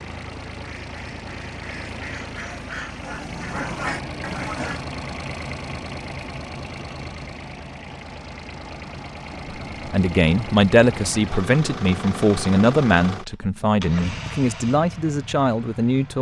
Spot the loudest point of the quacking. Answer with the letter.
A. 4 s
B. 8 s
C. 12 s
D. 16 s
A.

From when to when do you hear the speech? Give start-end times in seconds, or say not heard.
9.8-16.1.